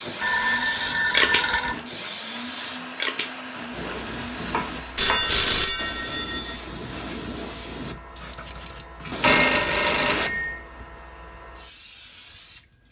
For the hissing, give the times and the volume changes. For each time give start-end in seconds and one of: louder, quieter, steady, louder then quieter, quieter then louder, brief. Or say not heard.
0.0-12.7 quieter.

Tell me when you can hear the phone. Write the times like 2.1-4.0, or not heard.
0.2-1.8, 5.0-6.5, 9.2-10.7.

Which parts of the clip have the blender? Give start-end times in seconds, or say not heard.
0.0-5.1.